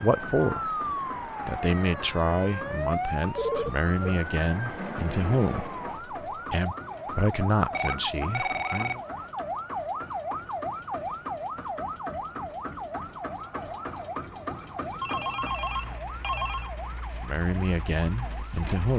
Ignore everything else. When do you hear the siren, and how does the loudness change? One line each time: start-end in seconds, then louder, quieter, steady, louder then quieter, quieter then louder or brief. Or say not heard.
0.0-18.7 quieter.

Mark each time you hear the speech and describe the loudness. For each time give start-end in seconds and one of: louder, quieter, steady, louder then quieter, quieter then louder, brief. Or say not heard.
0.0-0.8 brief
1.4-9.0 steady
17.1-18.9 brief.